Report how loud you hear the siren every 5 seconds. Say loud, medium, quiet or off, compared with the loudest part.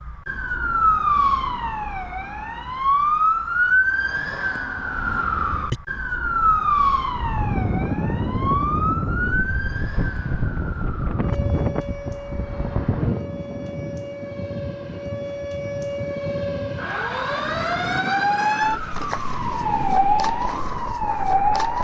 loud, loud, quiet, loud, loud.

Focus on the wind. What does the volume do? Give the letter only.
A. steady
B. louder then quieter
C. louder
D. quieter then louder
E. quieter
E.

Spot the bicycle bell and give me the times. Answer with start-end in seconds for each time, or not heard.
not heard.